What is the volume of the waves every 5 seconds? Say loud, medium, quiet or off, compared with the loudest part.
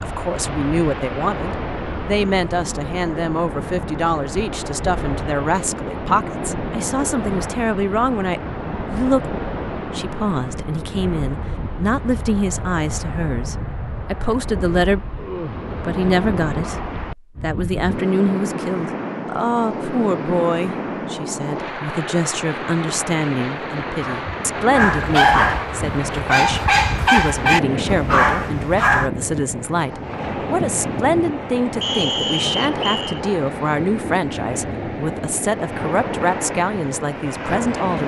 loud, loud, medium, loud, loud, loud, loud, loud.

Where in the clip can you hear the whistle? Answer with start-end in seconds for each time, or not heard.
31.8-33.2.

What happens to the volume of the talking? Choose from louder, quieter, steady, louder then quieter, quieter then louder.
steady.